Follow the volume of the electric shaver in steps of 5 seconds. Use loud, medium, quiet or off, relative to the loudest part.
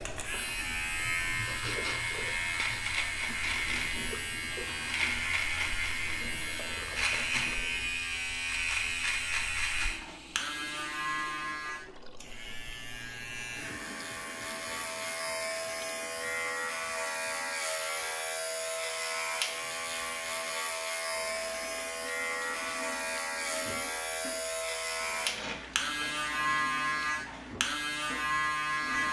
loud, loud, medium, loud, loud, loud.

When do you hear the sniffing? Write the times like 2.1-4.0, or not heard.
1.2-3.0, 25.4-26.1.